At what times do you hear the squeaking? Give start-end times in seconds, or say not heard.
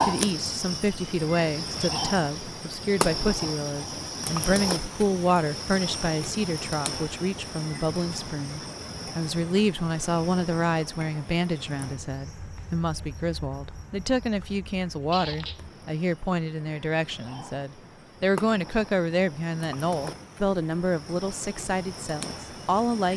15.1-15.6.